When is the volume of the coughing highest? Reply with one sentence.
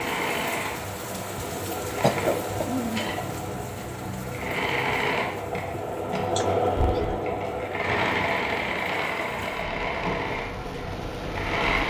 The volume of the coughing peaks at 2 seconds.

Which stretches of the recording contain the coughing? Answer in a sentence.
The coughing can be heard from 2.0 to 2.6 s and from 6.3 to 7.2 s.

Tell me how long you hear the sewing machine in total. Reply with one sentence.
The sewing machine can be heard for 12 seconds in total.